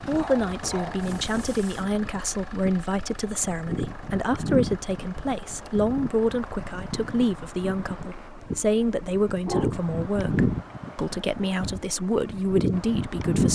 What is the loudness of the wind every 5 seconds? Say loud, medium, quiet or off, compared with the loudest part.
medium, medium, loud.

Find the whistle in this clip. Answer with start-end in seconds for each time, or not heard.
not heard.